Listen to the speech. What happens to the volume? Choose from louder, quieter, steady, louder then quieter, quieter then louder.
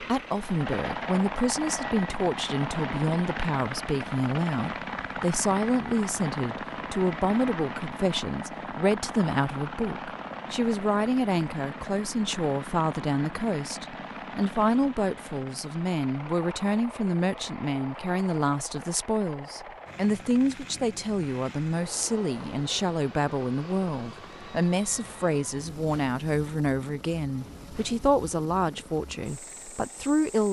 steady.